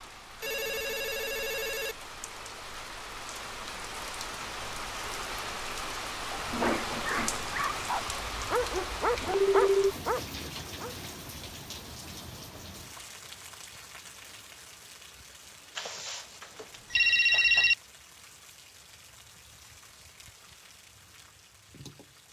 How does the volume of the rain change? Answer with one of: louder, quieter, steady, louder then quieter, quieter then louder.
louder then quieter.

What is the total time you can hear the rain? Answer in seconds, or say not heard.
22 s.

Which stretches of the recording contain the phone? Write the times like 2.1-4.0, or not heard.
0.4-1.9, 8.1-9.9, 15.8-17.8.